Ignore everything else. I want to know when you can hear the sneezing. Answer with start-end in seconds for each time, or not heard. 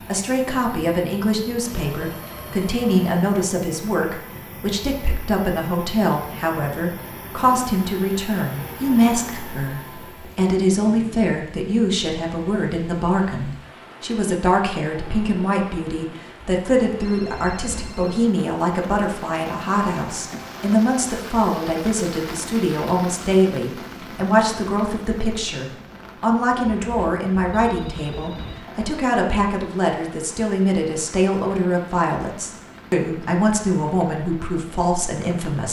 not heard.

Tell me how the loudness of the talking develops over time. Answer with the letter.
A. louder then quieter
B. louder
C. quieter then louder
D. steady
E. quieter
D.